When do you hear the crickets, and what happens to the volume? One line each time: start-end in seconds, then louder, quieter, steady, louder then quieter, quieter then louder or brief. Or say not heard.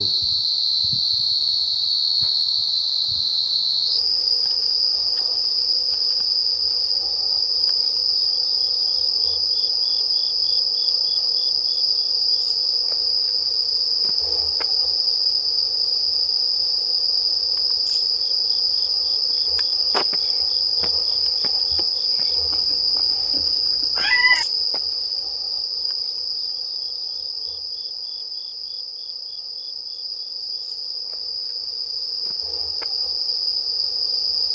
0.0-34.4 quieter.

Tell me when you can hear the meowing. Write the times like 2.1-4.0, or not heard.
22.5-24.4.